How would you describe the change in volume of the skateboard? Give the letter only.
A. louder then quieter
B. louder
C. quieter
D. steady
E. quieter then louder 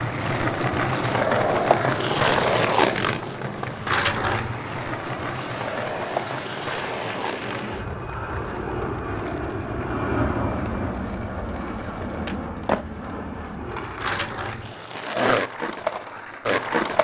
E.